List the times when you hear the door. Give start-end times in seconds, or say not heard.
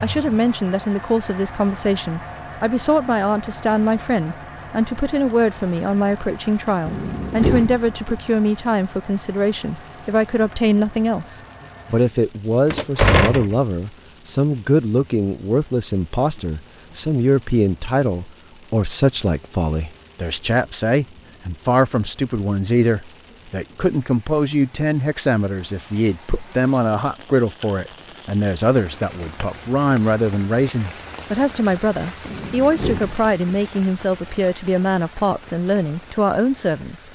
6.8-8.2, 12.7-13.6, 32.2-33.6.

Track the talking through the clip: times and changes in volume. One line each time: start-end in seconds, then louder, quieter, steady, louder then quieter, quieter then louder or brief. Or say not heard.
0.0-37.1 steady.